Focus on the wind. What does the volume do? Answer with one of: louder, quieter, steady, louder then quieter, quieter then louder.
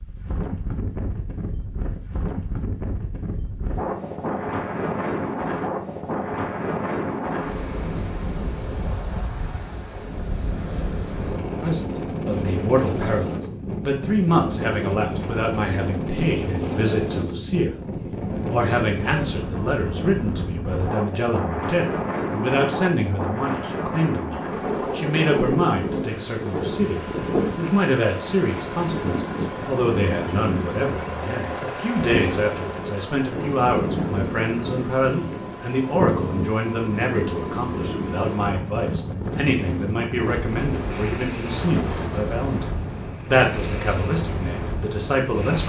steady.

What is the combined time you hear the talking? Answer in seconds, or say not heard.
34 s.